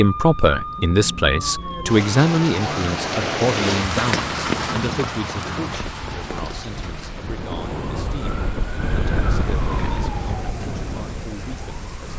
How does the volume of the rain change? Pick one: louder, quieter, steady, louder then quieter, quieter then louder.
louder then quieter.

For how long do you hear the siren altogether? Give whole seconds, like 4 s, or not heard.
12 s.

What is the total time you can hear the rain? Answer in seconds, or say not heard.
12 s.